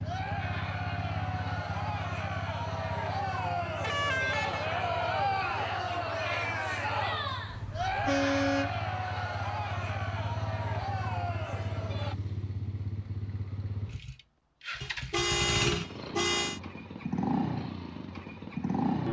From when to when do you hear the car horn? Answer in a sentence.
The car horn can be heard from 3.8 to 4.7 s, from 7.5 to 8.8 s and from 14.8 to 16.6 s.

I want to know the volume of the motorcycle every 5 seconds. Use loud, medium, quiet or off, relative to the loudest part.
medium, medium, medium, loud.